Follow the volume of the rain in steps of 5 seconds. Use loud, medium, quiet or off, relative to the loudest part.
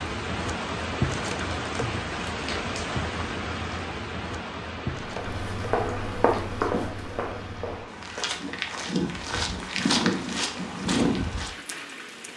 loud, medium, medium.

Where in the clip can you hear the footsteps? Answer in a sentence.
The footsteps can be heard from 5.0 to 11.5 s.